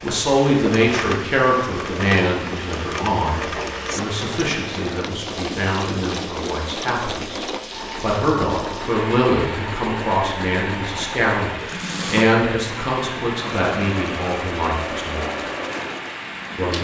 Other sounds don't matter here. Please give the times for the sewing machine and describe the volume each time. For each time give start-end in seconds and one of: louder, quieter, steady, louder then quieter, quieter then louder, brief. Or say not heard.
0.0-16.7 steady.